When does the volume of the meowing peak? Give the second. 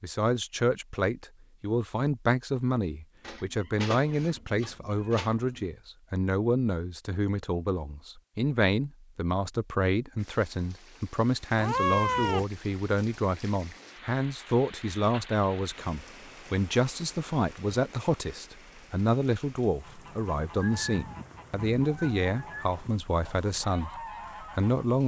12 s.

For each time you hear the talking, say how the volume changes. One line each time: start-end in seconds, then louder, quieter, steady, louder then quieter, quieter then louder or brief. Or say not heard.
0.0-25.0 steady.